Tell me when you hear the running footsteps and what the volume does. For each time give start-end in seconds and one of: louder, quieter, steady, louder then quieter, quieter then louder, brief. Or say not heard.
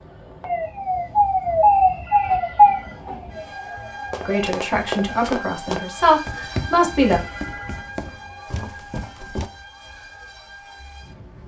4.1-9.5 quieter.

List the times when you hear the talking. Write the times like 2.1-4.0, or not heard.
4.2-7.2.